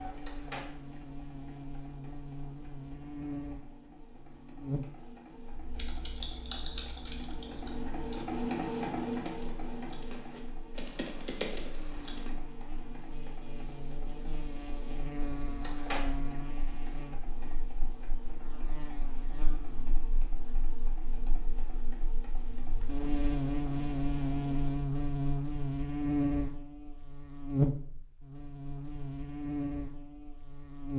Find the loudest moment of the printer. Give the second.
9 s.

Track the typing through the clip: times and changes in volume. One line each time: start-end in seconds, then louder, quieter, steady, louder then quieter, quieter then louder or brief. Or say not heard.
5.5-12.3 quieter then louder.